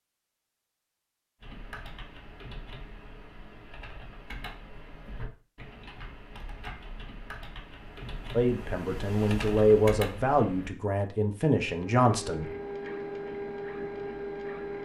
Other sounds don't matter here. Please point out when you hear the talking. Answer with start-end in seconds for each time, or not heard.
8.3-12.5.